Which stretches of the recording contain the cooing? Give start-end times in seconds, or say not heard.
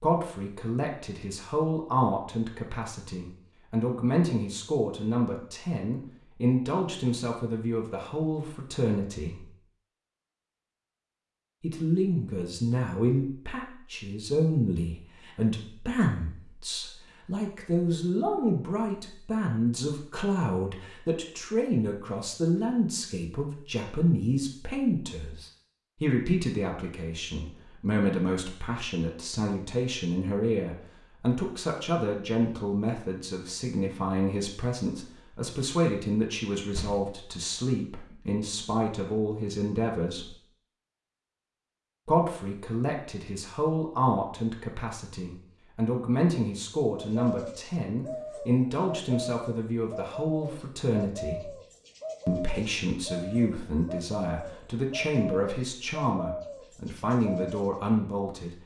46.9-57.7.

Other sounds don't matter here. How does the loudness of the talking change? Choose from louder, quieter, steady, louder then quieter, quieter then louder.
steady.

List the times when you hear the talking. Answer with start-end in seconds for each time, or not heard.
0.0-9.5, 11.6-40.4, 42.0-51.5, 52.2-58.5.